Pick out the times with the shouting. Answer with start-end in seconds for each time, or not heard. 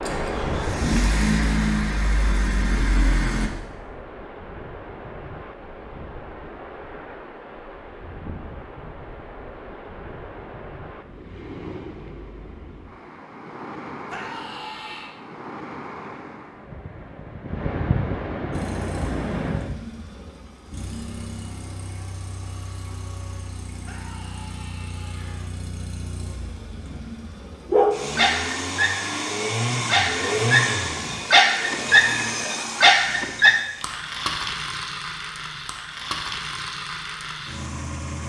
14.1-15.1, 23.8-25.5.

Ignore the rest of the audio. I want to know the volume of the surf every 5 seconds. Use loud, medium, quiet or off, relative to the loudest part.
loud, medium, medium, loud, off, off, off, off.